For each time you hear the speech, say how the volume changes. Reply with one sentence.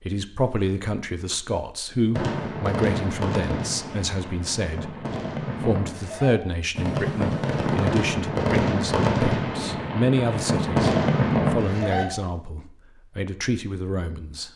You can hear the speech from 0.0 to 14.5 s, at a steady volume.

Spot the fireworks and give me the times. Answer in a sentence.
You can hear the fireworks from 2.1 to 12.1 s.